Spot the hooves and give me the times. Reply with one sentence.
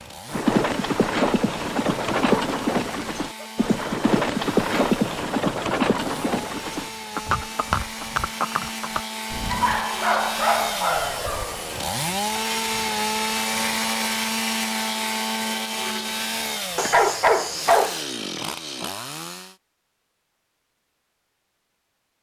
The hooves can be heard from 0.2 to 9.8 s.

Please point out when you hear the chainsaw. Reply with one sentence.
The chainsaw can be heard from 0.0 to 19.6 s.